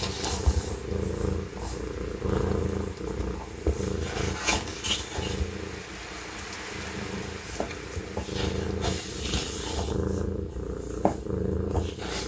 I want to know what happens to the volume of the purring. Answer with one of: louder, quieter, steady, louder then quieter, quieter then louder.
quieter then louder.